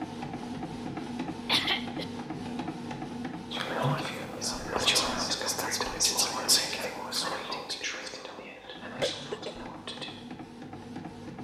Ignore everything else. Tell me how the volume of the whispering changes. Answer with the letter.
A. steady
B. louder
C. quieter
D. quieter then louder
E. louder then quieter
C.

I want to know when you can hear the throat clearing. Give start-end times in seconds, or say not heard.
1.4-2.0, 9.0-9.7.